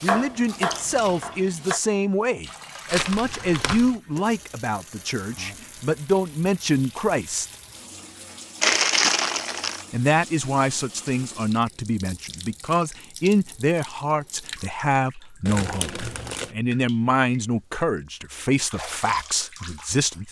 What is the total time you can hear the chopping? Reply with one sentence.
The chopping can be heard for 2 seconds in total.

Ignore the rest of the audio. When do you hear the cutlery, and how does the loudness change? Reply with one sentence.
The cutlery can't be heard in this clip.